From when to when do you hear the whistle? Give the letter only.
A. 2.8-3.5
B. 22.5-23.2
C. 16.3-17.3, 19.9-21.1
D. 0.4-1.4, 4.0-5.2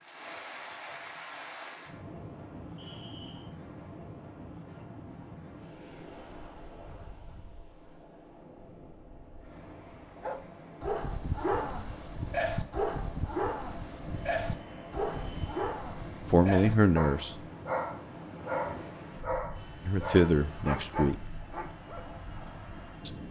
A.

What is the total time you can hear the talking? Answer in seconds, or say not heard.
2 s.